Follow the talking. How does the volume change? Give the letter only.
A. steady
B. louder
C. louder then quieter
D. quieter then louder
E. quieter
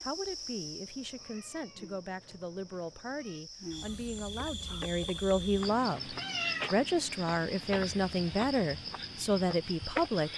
B.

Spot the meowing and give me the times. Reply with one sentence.
You can hear the meowing from 0.8 to 3.5 s and from 6.2 to 6.8 s.